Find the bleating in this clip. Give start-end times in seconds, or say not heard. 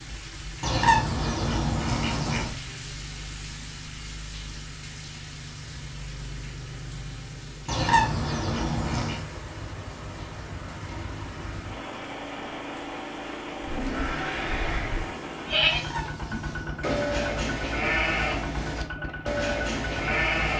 13.6-20.5.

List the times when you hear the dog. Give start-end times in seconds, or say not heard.
not heard.